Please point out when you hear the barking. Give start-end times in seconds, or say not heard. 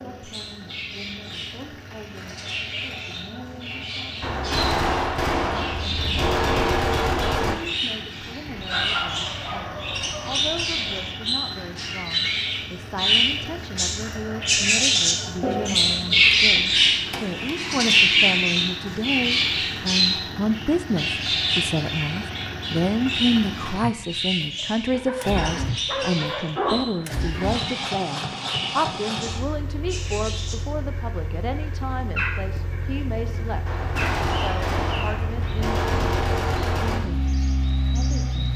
8.4-11.1, 24.9-26.9.